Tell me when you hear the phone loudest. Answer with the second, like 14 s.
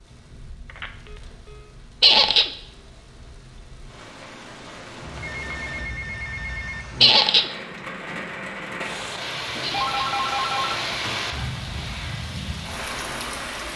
10 s.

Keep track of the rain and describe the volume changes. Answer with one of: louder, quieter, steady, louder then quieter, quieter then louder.
louder.